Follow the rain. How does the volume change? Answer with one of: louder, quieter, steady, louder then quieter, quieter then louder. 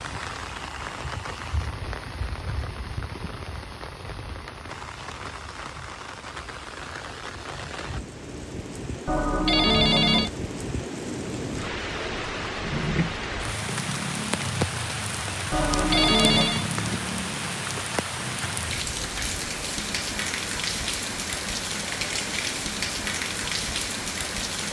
louder.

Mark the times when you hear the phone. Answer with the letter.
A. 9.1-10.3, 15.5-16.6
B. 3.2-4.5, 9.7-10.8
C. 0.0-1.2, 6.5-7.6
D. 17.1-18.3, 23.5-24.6
A.